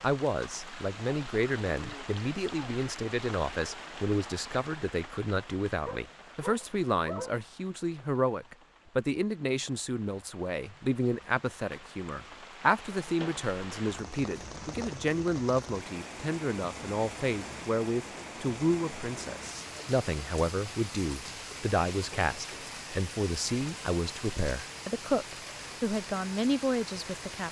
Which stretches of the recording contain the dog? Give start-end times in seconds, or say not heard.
5.8-7.4.